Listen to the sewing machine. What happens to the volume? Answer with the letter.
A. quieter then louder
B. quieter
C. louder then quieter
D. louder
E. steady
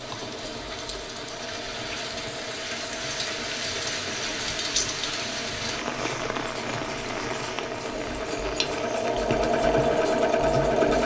D.